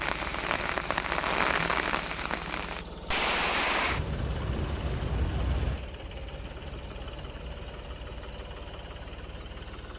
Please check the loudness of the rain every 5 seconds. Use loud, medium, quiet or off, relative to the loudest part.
loud, medium.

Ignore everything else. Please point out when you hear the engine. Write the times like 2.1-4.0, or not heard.
0.0-9.9.